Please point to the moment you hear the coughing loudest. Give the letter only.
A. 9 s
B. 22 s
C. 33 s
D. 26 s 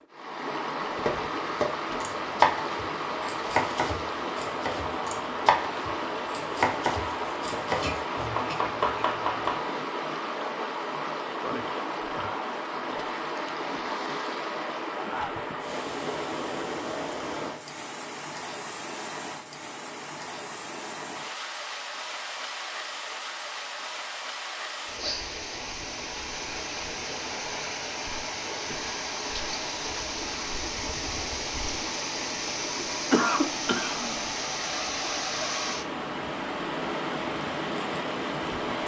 C.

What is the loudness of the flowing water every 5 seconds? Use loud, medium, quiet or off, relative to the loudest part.
loud, loud, loud, loud, medium, loud, loud, loud.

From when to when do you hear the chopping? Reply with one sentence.
You can hear the chopping from 1.0 to 9.6 s.